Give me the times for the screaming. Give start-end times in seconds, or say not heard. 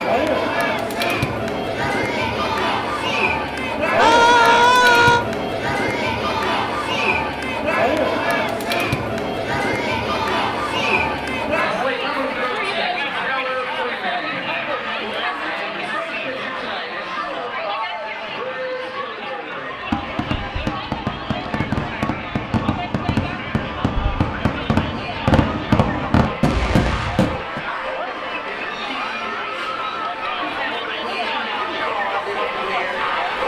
4.0-5.2.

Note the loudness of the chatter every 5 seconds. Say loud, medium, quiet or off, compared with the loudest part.
loud, loud, loud, medium, medium, medium, loud.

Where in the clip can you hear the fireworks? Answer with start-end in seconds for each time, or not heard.
19.6-27.6.